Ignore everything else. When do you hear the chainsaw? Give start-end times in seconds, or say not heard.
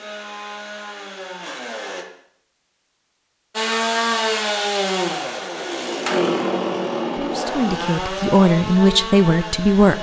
0.0-2.0, 3.5-9.9.